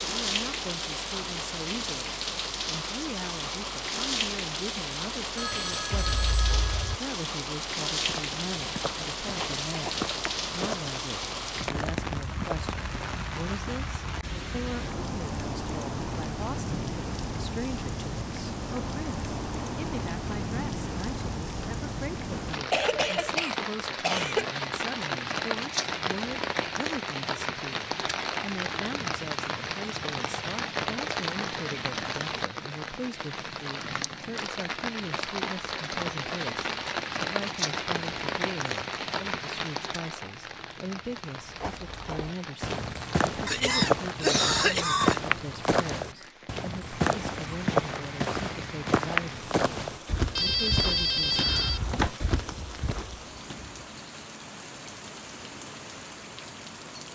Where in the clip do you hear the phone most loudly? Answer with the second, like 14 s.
51 s.